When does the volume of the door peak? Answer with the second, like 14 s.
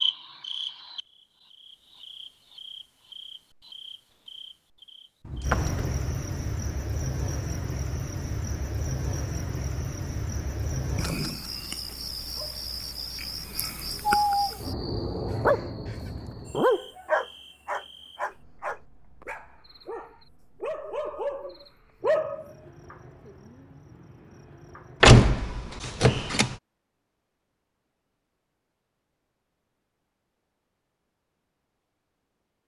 25 s.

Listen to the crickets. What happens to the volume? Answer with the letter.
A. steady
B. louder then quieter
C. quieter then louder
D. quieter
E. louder
B.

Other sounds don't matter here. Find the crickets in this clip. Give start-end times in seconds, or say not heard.
0.0-25.2.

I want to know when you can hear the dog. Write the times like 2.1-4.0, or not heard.
14.1-14.6, 15.2-22.5.